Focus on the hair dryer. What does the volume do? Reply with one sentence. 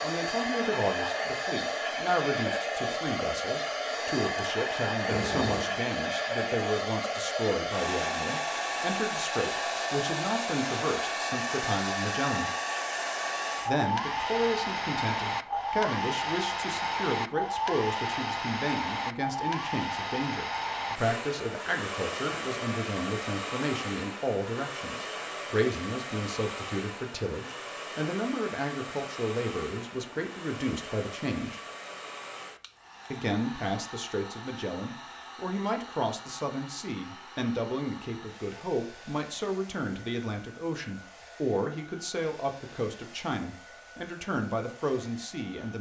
The loudness of the hair dryer goes down.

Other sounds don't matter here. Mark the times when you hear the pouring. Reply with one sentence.
The pouring can be heard from 5.0 to 5.7 s.